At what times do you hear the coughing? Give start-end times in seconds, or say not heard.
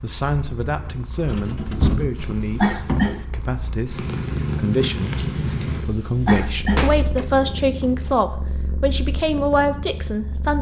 2.1-3.2, 5.8-6.8.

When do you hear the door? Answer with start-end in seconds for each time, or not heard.
1.2-3.1, 6.5-8.2.